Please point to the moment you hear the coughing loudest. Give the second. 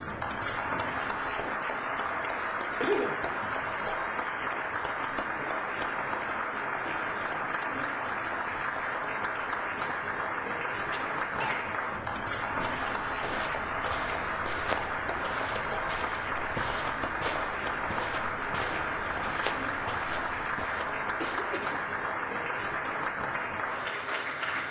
3 s.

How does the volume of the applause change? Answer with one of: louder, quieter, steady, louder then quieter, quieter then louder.
steady.